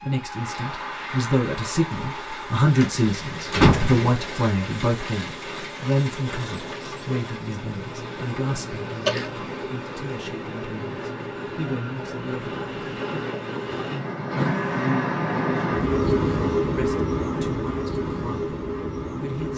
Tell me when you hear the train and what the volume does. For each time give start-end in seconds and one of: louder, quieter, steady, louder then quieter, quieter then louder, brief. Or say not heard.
0.0-19.5 louder.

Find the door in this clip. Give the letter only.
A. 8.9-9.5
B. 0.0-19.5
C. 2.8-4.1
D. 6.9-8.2
C.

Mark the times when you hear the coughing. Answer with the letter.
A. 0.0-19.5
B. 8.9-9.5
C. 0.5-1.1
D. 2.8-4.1
B.